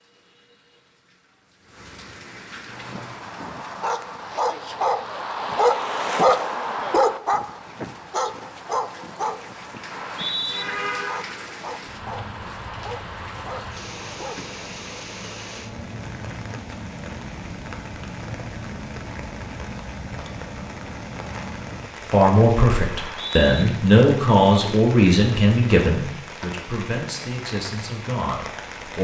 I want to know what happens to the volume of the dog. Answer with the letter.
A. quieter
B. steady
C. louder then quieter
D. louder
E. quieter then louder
C.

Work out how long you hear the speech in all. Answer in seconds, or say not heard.
7 s.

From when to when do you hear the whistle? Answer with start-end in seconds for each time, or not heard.
9.9-10.7, 22.9-23.6.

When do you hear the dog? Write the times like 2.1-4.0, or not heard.
2.7-14.4.